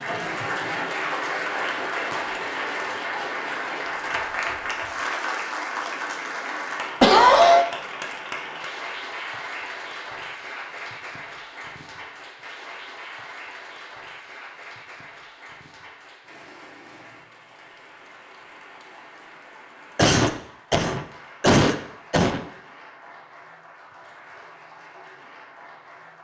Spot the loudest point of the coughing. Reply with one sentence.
The volume of the coughing peaks at 7 seconds.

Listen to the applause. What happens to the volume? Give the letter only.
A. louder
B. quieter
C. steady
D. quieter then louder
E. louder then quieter
B.